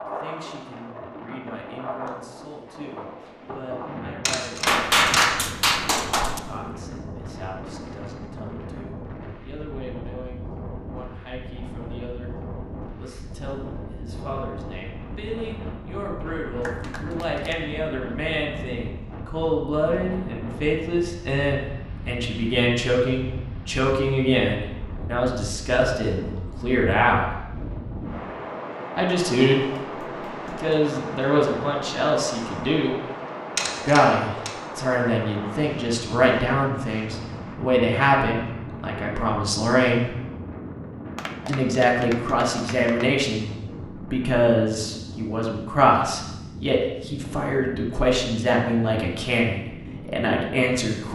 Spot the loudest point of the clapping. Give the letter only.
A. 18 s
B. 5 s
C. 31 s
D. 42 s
B.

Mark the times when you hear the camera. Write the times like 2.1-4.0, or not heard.
4.2-5.4, 33.5-34.5.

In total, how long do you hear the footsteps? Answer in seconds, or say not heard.
not heard.